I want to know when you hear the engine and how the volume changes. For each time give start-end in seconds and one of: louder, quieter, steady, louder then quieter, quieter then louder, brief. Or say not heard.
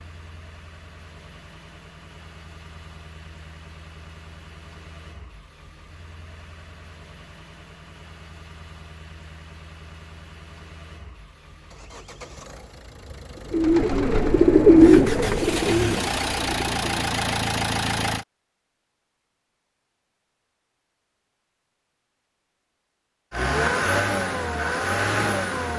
0.0-18.2 louder
23.3-25.7 brief.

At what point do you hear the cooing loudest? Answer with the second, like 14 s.
15 s.